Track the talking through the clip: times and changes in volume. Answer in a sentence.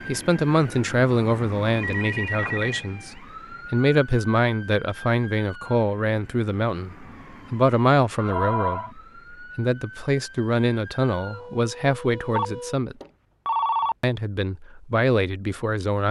You can hear the talking from 0.1 to 12.9 s, at a steady volume; and briefly from 14.0 to 16.0 s.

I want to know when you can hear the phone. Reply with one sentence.
The phone can be heard from 1.7 to 2.9 s, from 8.2 to 8.9 s and from 12.3 to 13.9 s.